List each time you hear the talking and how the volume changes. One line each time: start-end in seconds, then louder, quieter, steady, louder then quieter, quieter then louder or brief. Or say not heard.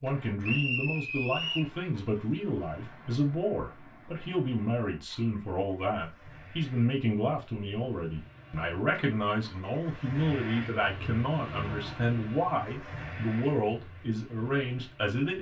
0.0-15.3 steady.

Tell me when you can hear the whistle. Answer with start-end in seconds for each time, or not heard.
0.4-1.7.